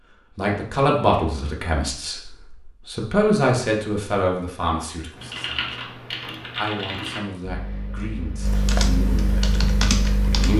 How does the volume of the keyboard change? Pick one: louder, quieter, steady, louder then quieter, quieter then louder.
quieter then louder.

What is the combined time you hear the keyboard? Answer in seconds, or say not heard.
5 s.